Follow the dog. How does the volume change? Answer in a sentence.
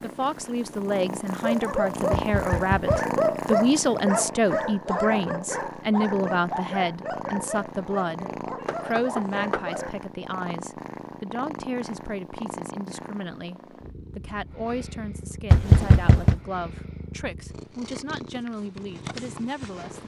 The loudness of the dog goes down.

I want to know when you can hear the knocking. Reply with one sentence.
You can hear the knocking from 2.1 to 3.0 s, from 8.7 to 9.7 s and from 15.5 to 16.4 s.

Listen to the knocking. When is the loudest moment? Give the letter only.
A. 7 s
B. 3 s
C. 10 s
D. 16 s
D.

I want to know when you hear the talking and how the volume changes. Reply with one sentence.
The talking can be heard from 0.0 to 20.0 s, getting quieter.